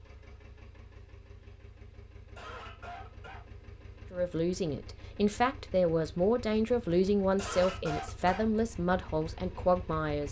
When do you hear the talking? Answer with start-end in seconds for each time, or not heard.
4.1-10.2.